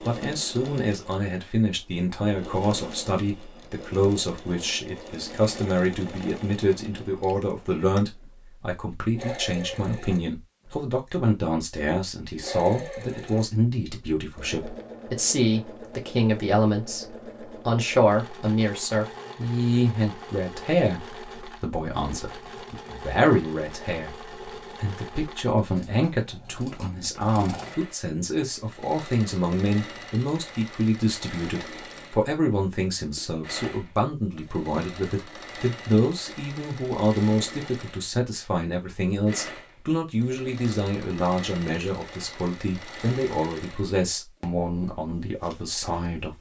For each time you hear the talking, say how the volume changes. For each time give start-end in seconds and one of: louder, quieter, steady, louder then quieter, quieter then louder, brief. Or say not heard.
0.0-46.3 steady.